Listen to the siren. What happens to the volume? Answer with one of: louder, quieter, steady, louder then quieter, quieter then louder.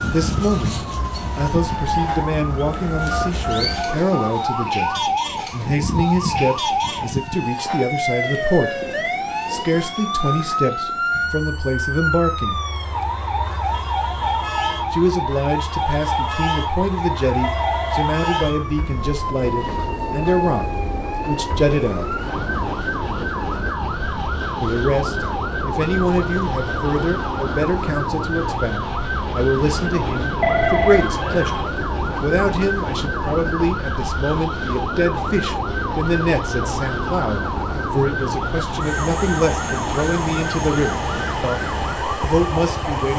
steady.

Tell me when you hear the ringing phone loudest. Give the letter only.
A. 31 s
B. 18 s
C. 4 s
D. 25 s
A.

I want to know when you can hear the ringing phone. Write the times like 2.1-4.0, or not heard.
3.1-5.0, 17.4-18.6, 30.4-31.6.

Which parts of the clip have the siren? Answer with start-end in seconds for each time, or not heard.
0.0-43.1.